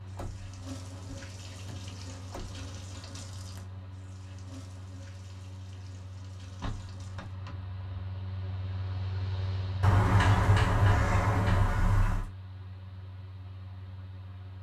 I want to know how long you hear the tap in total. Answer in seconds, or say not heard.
7 s.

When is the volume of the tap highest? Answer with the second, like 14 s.
1 s.